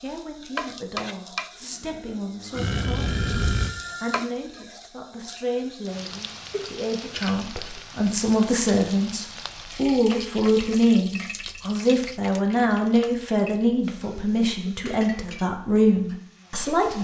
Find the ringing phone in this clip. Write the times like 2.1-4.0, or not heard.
3.0-4.2.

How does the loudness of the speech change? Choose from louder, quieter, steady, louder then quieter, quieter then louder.
louder.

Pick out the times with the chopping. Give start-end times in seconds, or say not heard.
not heard.